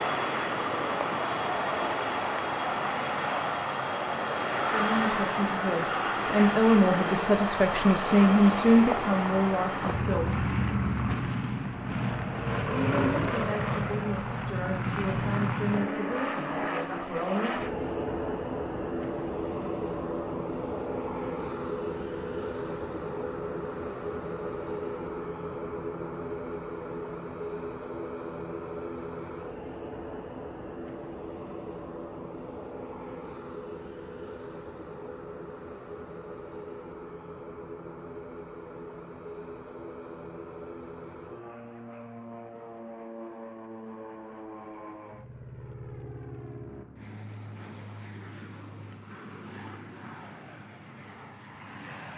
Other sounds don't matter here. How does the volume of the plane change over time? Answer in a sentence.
The volume of the plane goes down.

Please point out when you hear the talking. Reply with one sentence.
The talking can be heard from 4.7 to 10.4 s and from 12.7 to 17.6 s.